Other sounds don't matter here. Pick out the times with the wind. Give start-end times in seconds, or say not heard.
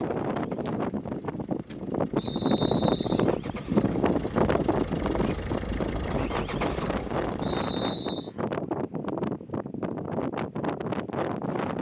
0.0-11.7.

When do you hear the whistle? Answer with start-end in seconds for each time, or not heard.
2.1-3.2, 7.4-8.3.